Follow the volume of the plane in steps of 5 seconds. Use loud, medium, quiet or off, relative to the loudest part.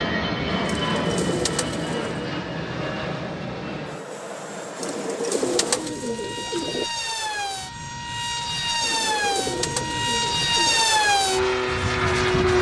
medium, medium, loud.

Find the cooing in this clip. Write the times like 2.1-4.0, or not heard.
0.7-2.3, 4.8-6.8, 8.8-10.9.